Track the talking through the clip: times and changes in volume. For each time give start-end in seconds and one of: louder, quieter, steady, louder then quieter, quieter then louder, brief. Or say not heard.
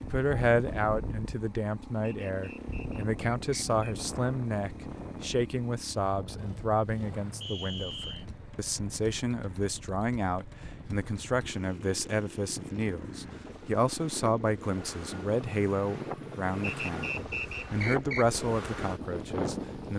0.0-19.9 steady.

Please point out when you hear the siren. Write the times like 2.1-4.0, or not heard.
not heard.